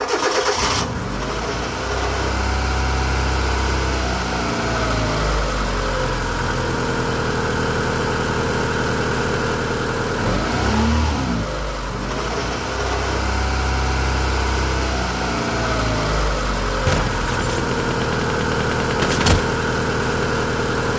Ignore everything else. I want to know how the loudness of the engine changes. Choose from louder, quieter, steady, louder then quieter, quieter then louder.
steady.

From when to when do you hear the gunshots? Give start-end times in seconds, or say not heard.
16.9-19.4.